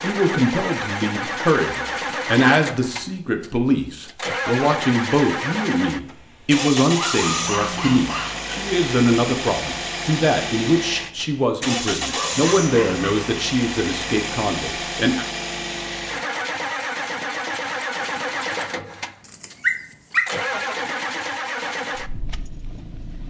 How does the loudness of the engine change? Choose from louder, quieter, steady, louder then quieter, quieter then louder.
steady.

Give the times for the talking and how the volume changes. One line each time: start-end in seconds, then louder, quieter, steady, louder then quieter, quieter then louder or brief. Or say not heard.
0.0-15.2 steady.